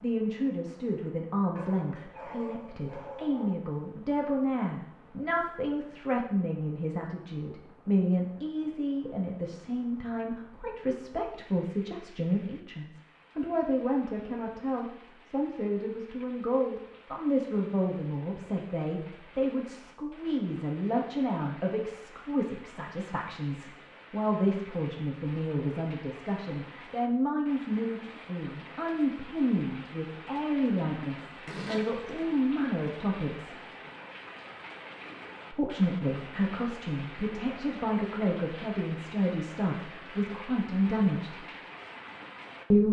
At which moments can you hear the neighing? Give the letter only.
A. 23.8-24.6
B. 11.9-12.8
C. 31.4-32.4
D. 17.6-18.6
C.